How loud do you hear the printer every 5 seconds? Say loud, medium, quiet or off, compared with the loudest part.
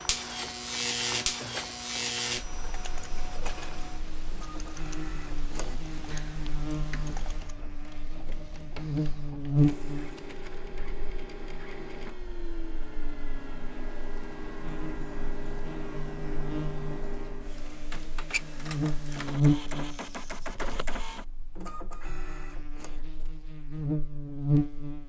loud, medium, loud, loud, loud.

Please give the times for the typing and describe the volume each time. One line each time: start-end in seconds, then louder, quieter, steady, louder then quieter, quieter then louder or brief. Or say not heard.
2.2-7.6 steady.